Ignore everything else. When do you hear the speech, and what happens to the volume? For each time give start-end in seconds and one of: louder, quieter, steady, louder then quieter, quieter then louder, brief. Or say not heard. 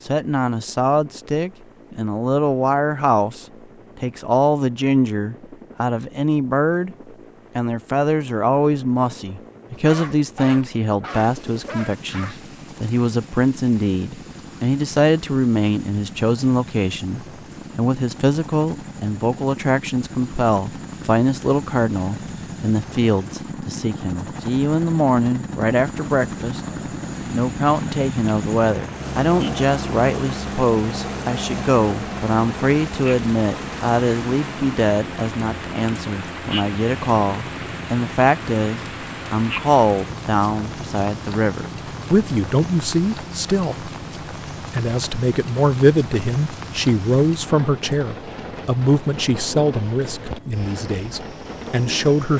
0.1-7.0 steady
7.5-26.6 steady
27.2-43.9 steady
44.7-52.3 quieter.